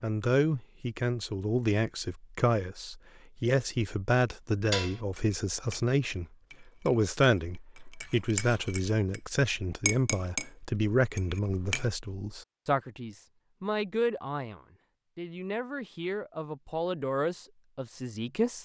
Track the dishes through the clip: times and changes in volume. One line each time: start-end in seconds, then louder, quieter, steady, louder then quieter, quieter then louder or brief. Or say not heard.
4.7-9.2 quieter then louder
9.8-10.5 brief
11.2-11.8 brief.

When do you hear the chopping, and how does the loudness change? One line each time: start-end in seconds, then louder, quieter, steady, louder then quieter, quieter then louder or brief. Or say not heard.
not heard.